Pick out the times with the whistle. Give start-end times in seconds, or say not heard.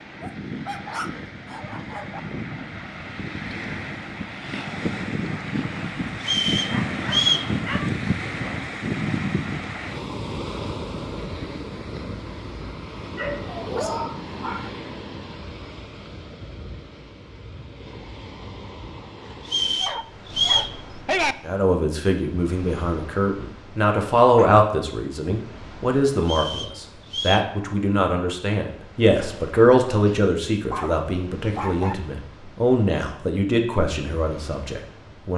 6.2-7.5, 19.4-20.8, 26.2-27.5.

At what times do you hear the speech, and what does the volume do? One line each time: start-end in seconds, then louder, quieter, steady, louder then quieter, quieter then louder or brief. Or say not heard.
21.4-35.3 steady.